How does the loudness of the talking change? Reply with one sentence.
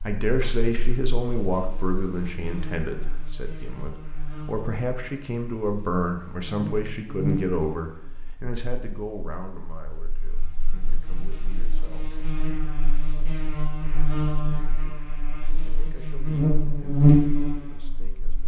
The loudness of the talking goes down.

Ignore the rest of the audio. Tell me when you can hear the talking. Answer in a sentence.
You can hear the talking from 0.1 to 12.2 s and from 13.8 to 18.4 s.